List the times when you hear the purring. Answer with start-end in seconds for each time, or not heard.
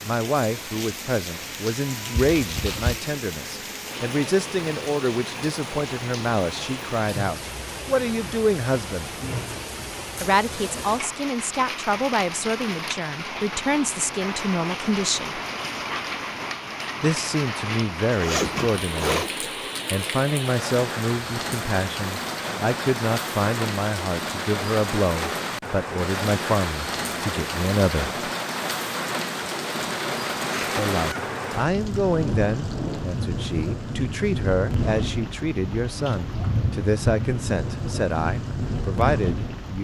not heard.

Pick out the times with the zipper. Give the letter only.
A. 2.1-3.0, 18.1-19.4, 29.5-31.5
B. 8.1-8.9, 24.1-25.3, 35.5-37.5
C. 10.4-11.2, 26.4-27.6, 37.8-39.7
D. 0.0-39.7
A.